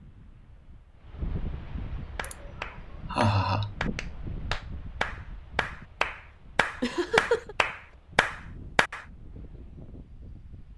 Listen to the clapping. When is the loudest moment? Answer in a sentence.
The volume of the clapping peaks at 7 seconds.